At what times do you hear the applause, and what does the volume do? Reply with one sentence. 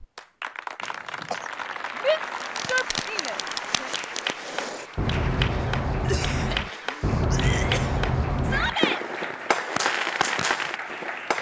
You can hear the applause from 0.0 to 11.3 s, at a steady volume.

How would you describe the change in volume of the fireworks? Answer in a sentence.
The loudness of the fireworks goes up.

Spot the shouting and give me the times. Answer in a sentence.
You can hear the shouting from 2.0 to 3.9 s and from 8.4 to 9.0 s.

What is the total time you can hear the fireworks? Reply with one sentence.
You can hear the fireworks for 9 seconds altogether.